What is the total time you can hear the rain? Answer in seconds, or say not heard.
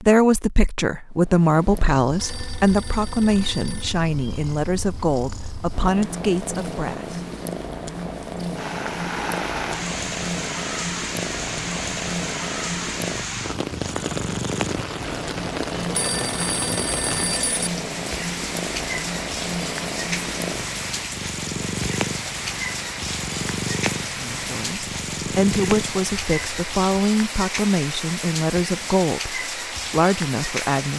22 s.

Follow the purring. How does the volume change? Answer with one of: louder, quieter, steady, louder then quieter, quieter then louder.
louder.